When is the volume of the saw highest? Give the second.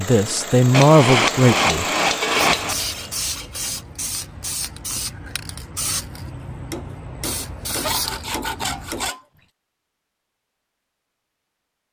9 s.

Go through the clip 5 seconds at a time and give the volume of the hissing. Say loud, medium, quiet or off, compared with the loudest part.
loud, loud, off.